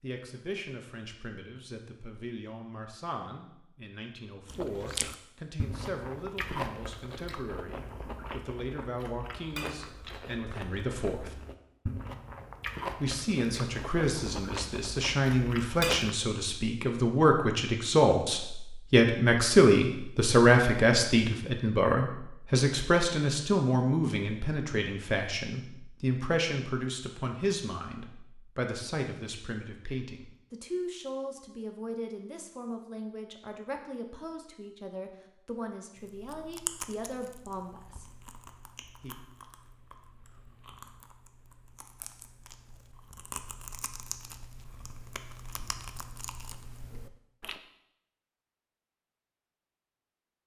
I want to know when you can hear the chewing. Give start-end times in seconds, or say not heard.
4.5-16.1, 36.0-47.6.